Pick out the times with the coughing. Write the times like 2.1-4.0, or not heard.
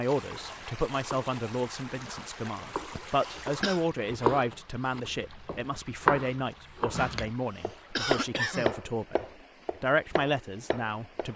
2.9-3.8, 7.2-8.8.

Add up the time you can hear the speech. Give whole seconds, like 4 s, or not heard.
11 s.